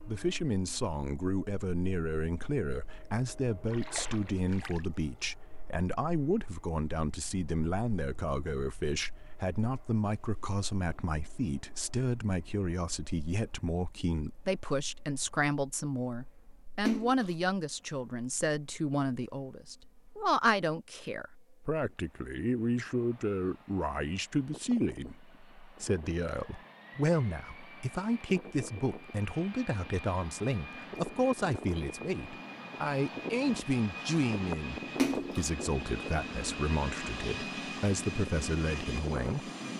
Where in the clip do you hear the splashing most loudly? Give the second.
35 s.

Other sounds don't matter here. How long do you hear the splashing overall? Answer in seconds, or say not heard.
2 s.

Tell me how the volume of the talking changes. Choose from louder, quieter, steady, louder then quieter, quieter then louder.
steady.